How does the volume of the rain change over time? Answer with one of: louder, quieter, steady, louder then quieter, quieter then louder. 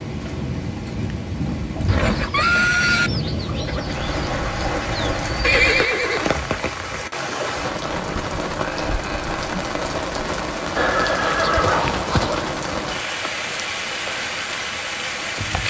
steady.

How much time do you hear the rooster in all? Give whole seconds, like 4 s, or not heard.
4 s.